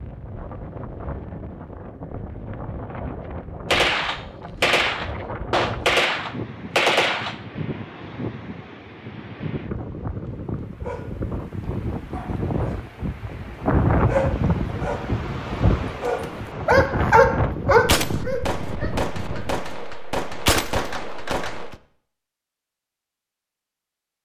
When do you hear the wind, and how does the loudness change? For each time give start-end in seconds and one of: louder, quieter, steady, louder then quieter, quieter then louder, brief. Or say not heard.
0.0-19.7 louder.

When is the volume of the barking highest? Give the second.
17 s.